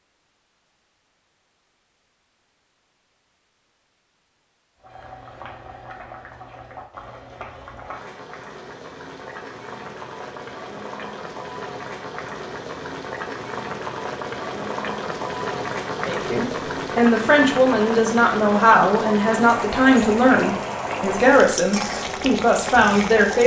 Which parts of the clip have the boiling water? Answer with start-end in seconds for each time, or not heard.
4.8-23.4.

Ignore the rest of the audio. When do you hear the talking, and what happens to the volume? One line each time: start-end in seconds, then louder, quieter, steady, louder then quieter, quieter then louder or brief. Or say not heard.
16.0-23.4 steady.